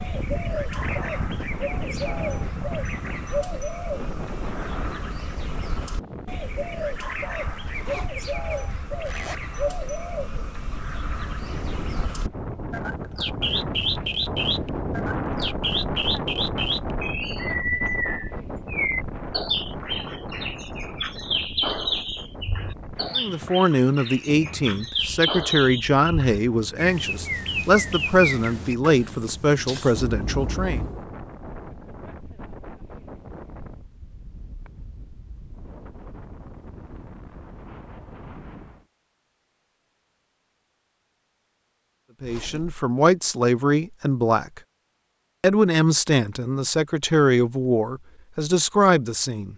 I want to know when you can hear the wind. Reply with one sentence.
The wind can be heard from 0.0 to 38.9 s.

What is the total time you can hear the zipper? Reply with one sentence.
You can hear the zipper for 4 seconds altogether.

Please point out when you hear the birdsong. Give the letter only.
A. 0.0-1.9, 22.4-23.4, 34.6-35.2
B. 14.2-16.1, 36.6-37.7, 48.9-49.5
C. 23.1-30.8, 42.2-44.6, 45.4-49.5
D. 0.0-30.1
D.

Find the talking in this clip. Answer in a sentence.
You can hear the talking from 23.1 to 30.8 s, from 42.2 to 44.6 s and from 45.4 to 49.5 s.